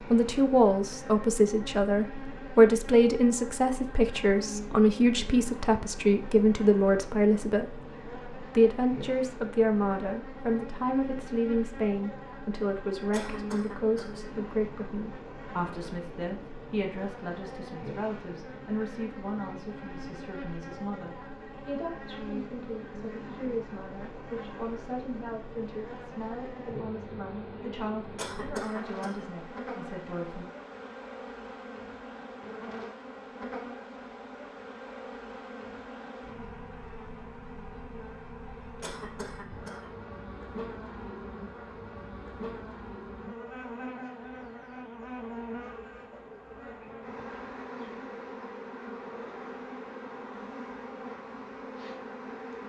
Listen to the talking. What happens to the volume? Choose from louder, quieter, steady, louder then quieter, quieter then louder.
quieter.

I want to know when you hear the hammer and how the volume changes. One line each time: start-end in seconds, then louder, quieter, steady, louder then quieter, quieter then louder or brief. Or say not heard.
not heard.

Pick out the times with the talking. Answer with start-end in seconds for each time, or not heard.
0.1-30.4.